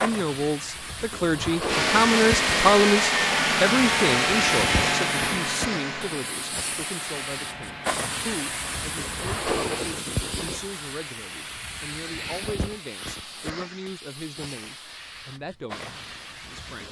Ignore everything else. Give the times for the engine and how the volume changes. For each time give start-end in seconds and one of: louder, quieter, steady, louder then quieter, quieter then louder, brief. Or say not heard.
1.6-10.0 quieter.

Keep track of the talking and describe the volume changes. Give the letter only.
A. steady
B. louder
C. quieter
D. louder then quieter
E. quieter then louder
C.